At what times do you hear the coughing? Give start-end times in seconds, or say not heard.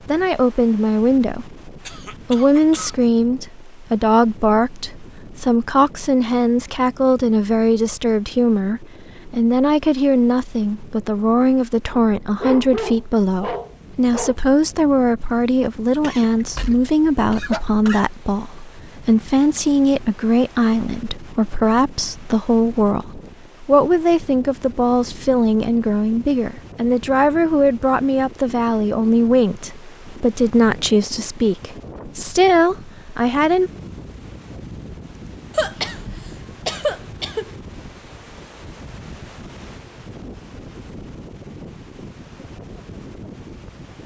1.9-3.1, 16.0-18.1, 35.5-37.5.